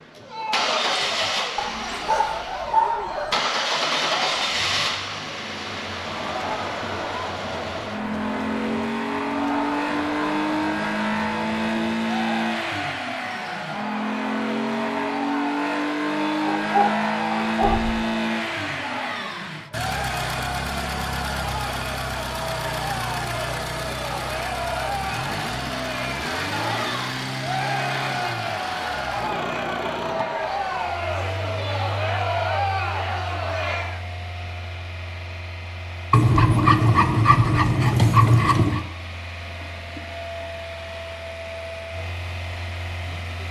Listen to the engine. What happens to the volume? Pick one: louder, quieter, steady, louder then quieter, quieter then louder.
quieter.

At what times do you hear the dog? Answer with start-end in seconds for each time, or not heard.
1.6-3.5, 16.4-18.1, 36.1-38.9.